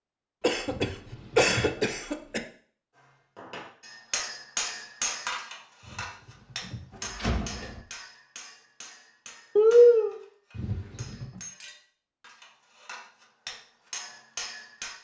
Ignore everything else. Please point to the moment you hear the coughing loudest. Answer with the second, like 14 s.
10 s.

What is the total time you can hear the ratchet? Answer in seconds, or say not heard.
not heard.